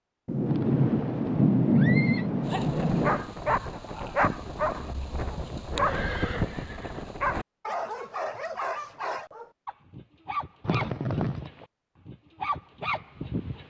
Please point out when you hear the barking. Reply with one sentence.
You can hear the barking from 2.5 to 13.6 s.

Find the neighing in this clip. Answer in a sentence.
The neighing can be heard from 0.5 to 2.2 s, from 4.8 to 7.1 s and from 10.7 to 11.5 s.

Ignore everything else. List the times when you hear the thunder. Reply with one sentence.
You can hear the thunder from 0.2 to 3.2 s.